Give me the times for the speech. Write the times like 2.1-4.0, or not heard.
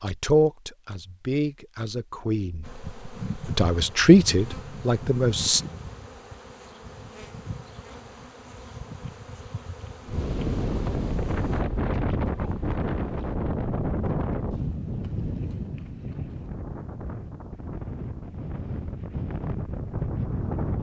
0.0-5.6.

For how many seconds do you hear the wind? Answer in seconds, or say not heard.
11 s.